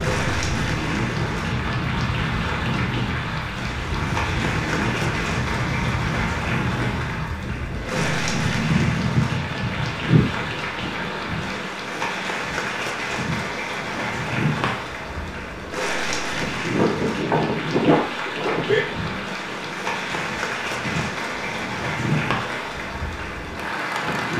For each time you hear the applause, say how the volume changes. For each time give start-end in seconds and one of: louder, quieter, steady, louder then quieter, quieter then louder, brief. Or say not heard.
0.0-24.3 steady.